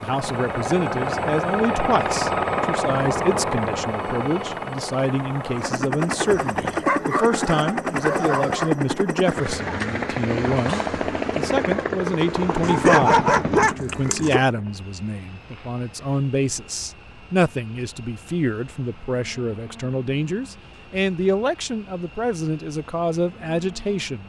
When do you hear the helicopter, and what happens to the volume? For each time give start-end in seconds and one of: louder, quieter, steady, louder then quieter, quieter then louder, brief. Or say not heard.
0.0-24.2 quieter.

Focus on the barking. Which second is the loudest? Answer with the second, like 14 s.
13 s.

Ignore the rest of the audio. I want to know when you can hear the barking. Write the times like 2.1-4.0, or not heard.
6.4-8.7, 12.6-14.4.